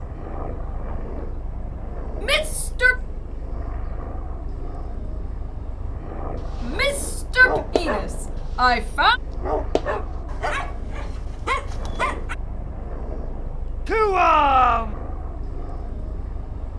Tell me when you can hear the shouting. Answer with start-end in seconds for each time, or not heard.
2.2-3.0, 6.6-9.2, 13.8-14.9.